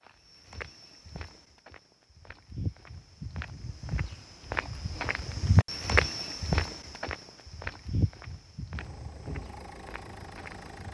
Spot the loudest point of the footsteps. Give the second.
6 s.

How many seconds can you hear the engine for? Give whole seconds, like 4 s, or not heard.
2 s.